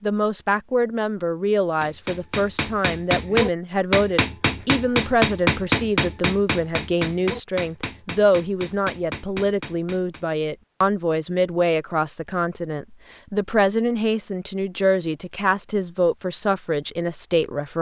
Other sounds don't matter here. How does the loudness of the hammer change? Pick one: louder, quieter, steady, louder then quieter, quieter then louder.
quieter.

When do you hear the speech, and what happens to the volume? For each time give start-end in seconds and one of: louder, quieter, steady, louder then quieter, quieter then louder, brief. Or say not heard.
0.0-17.7 steady.